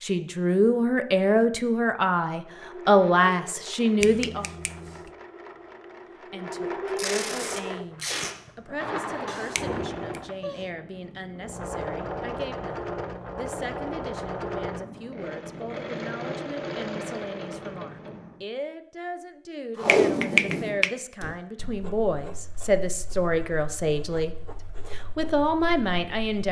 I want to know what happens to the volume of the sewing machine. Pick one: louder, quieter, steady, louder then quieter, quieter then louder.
louder.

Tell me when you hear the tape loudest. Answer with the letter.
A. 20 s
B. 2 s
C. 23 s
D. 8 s
A.